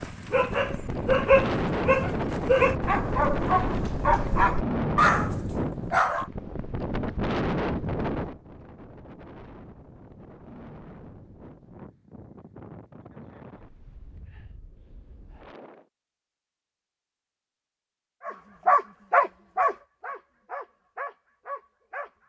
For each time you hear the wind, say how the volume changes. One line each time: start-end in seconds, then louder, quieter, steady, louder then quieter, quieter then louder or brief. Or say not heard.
0.0-15.9 quieter.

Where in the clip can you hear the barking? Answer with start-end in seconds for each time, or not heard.
0.0-6.2, 18.2-22.1.